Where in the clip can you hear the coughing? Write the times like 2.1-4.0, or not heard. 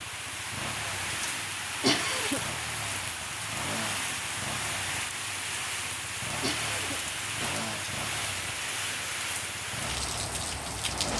1.8-2.4, 6.4-7.5.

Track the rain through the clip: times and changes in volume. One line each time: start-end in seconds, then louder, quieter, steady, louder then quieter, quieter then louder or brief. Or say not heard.
0.0-11.1 steady.